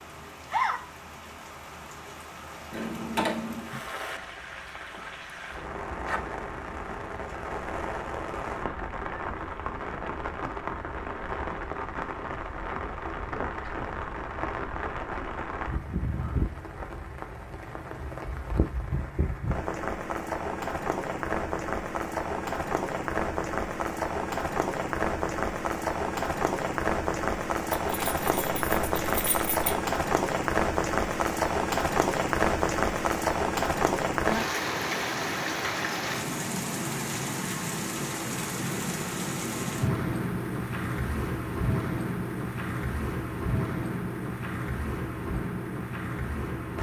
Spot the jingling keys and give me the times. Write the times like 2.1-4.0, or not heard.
2.7-3.6, 27.7-29.8.